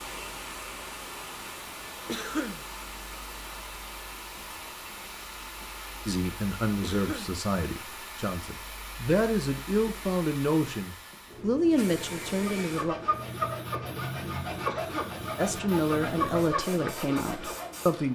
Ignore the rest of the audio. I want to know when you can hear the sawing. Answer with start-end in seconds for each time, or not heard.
12.6-17.9.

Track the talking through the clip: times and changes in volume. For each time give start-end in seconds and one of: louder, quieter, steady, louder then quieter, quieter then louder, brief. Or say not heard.
6.0-12.9 quieter then louder
15.3-18.1 brief.